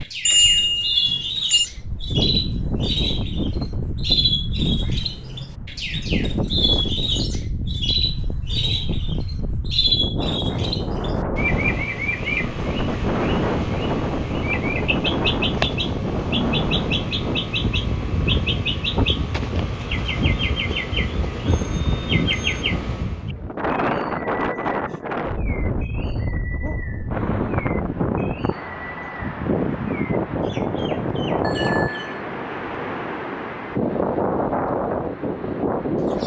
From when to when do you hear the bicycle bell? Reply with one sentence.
The bicycle bell can be heard from 0.2 to 1.7 s, from 21.4 to 22.6 s and from 31.4 to 32.2 s.